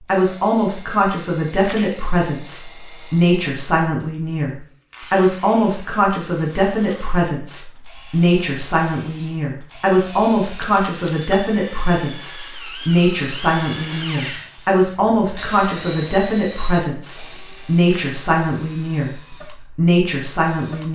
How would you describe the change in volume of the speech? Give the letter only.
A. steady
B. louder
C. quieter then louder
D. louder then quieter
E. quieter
A.